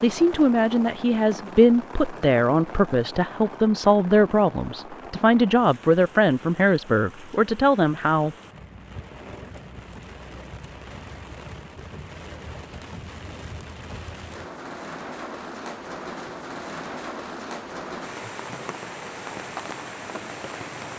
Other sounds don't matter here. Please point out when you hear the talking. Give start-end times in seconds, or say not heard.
0.0-8.3.